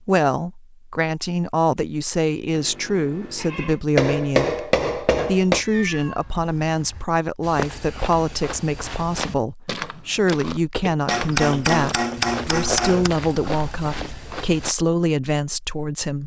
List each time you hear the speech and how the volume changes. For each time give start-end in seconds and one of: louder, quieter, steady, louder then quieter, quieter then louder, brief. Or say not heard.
0.1-16.2 steady.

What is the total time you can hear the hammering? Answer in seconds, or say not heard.
4 s.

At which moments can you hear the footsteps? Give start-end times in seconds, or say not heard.
7.4-14.8.